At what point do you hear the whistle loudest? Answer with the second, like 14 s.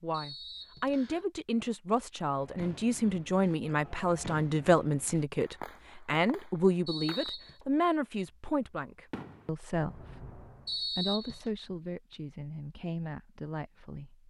11 s.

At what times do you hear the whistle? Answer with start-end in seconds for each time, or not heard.
0.1-1.2, 6.8-7.6, 10.7-11.5.